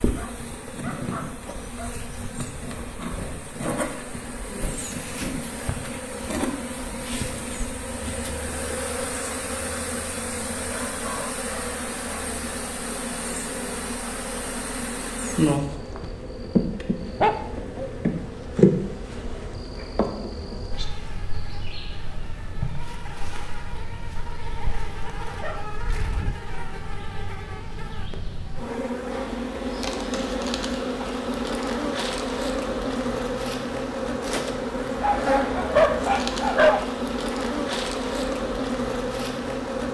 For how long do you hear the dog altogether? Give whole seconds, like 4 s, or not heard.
8 s.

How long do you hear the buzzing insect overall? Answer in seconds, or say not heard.
40 s.